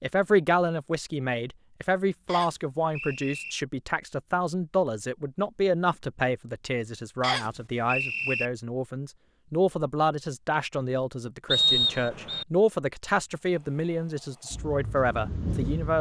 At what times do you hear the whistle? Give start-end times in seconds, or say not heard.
2.2-3.5, 7.2-8.4, 11.5-12.4.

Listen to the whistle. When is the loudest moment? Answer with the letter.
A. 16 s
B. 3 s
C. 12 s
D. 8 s
C.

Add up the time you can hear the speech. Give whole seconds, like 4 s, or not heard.
16 s.